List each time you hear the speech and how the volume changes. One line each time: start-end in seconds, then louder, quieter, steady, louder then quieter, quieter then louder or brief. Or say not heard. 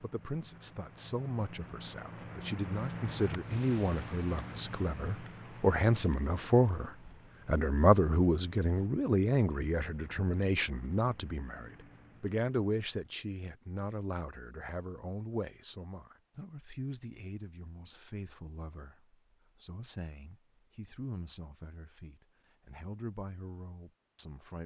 0.0-24.6 louder then quieter.